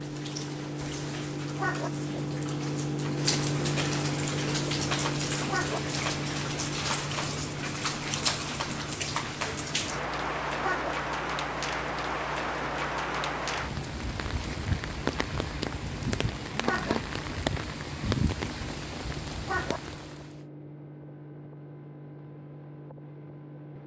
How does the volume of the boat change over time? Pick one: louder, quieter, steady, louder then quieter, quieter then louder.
quieter.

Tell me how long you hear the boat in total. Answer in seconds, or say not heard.
24 s.